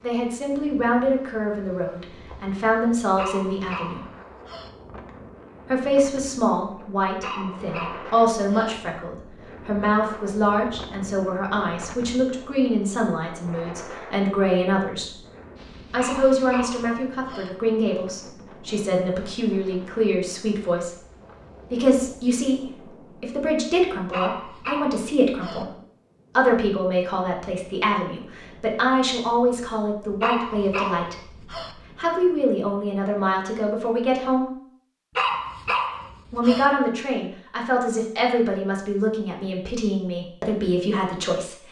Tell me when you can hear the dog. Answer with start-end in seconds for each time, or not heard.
3.1-4.7, 7.2-8.8, 15.9-17.5, 24.1-25.6, 30.2-31.8, 35.1-36.7.